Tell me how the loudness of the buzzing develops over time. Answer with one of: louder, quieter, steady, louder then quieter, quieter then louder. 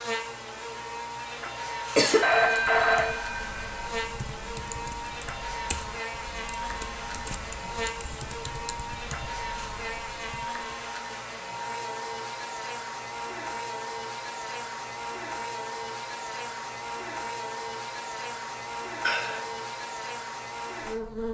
steady.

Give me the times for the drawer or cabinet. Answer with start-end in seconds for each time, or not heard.
not heard.